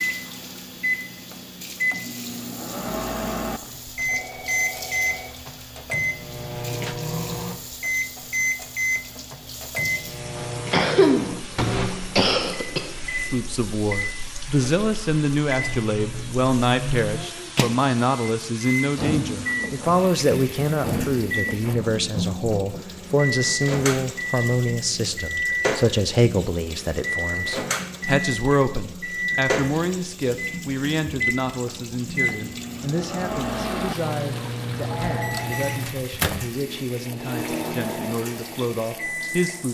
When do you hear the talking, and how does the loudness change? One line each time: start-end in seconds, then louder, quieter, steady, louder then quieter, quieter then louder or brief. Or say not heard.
13.2-39.7 quieter.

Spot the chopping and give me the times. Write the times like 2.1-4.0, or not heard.
not heard.